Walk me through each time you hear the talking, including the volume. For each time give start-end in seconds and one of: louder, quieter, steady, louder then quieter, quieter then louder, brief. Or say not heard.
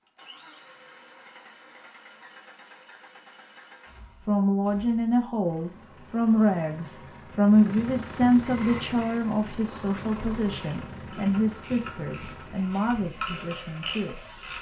4.2-14.2 quieter.